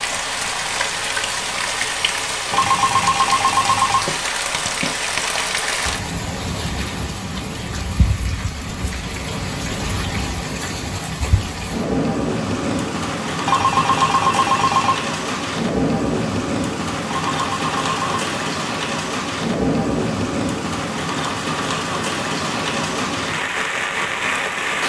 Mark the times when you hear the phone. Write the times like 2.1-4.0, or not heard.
2.5-4.0, 13.4-15.0, 17.2-18.2.